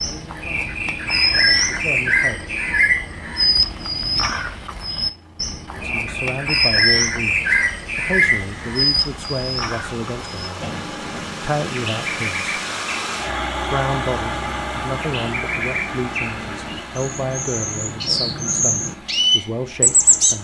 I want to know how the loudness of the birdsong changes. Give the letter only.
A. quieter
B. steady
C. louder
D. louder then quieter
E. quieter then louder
E.